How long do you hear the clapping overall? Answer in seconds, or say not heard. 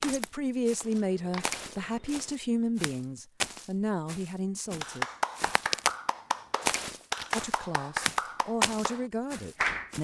5 s.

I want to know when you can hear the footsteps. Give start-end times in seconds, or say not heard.
0.0-6.0, 6.6-9.9.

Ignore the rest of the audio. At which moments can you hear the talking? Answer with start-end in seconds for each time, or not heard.
0.0-5.0, 7.3-9.9.